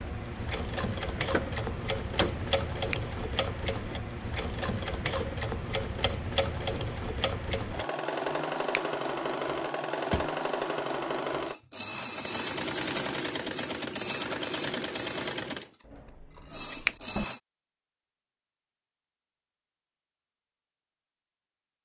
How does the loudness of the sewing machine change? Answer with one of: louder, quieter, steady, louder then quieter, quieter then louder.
steady.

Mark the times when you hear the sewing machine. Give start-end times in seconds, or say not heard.
0.0-17.4.